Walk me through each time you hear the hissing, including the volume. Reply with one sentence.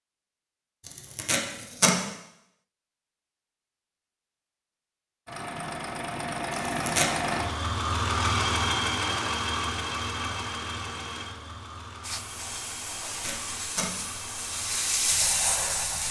The hissing can be heard from 12.0 to 16.0 s, getting louder.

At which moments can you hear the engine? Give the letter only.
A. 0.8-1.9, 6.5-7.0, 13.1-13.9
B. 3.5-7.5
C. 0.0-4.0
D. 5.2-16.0
D.